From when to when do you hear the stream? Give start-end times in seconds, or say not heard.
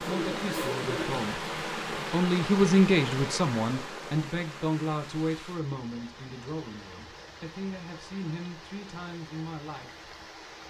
0.0-10.6.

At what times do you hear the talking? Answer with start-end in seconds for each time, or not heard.
0.0-10.1.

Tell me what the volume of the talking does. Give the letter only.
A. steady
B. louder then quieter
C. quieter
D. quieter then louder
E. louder
B.